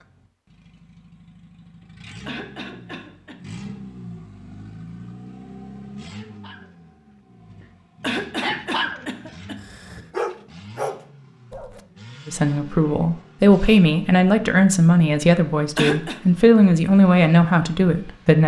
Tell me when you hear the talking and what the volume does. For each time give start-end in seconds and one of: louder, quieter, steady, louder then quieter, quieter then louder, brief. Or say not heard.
12.2-18.4 steady.